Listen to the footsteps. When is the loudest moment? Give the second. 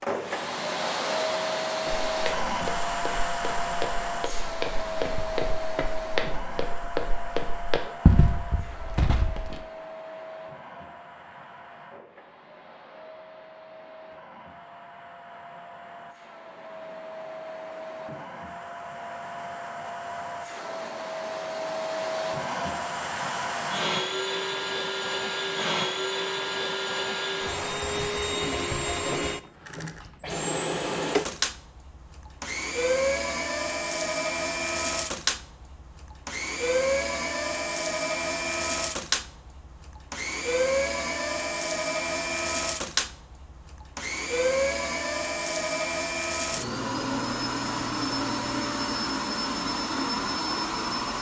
8 s.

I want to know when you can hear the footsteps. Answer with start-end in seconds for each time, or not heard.
1.9-9.6.